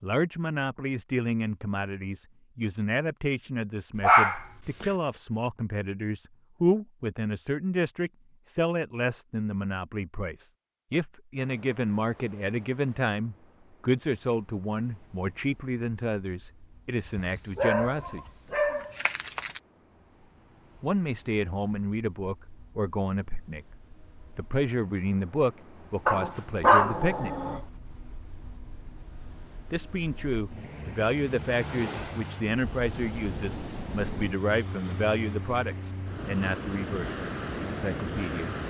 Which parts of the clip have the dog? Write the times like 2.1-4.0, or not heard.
4.0-4.9, 17.1-19.6, 26.1-27.6.